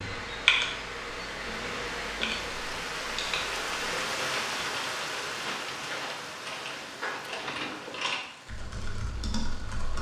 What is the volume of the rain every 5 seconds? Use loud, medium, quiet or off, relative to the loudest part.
loud, medium.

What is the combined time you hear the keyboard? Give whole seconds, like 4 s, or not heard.
10 s.